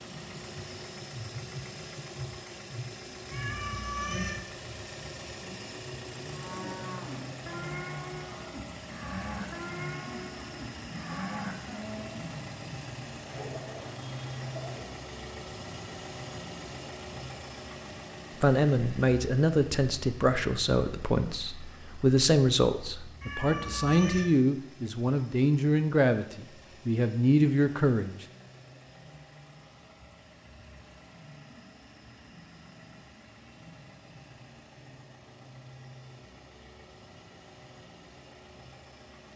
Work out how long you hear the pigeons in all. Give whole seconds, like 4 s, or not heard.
2 s.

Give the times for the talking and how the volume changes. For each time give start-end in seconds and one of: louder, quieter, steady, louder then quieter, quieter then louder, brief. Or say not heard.
18.4-28.2 steady.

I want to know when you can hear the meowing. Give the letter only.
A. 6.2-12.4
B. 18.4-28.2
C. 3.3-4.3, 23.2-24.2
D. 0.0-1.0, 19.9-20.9
C.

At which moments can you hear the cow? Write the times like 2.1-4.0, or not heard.
6.2-12.4.